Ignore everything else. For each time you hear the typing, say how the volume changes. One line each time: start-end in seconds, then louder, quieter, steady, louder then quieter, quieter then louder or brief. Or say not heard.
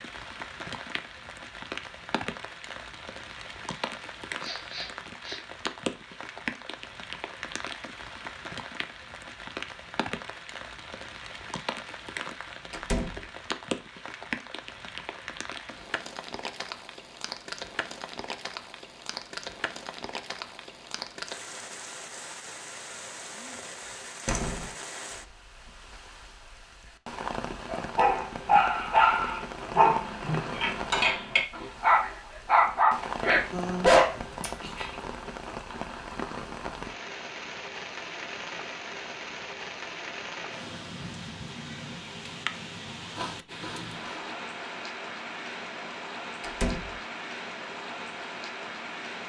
not heard.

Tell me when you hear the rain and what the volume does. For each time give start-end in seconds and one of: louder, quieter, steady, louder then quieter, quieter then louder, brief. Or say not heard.
0.0-49.2 steady.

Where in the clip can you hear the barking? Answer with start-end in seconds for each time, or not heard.
27.6-34.9.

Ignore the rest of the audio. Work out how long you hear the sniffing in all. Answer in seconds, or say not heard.
2 s.